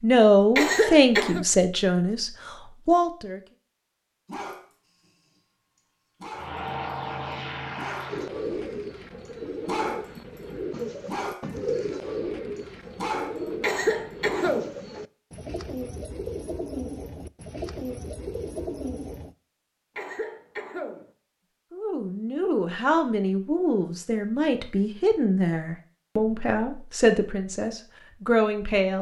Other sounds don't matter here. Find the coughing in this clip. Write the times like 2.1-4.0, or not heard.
0.6-1.4, 13.6-14.8, 19.9-21.1.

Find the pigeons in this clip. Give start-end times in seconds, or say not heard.
8.1-19.4.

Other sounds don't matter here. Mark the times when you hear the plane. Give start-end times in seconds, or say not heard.
6.3-8.3.